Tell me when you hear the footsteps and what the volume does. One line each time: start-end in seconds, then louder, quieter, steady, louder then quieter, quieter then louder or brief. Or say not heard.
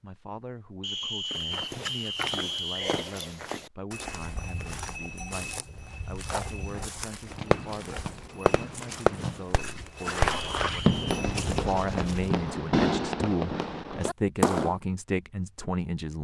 1.3-12.4 quieter then louder.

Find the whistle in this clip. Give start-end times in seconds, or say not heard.
0.8-3.1, 10.3-11.1.